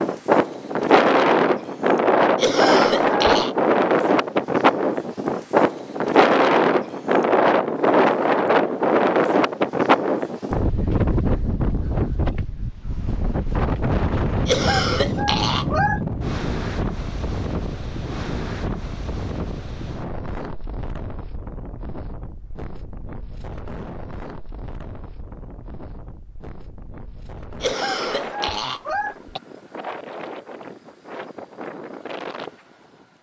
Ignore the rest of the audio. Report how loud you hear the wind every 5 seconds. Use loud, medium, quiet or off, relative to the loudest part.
loud, loud, medium, medium, quiet, quiet, quiet.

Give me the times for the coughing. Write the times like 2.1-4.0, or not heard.
2.4-3.5, 14.4-16.0, 27.6-29.4.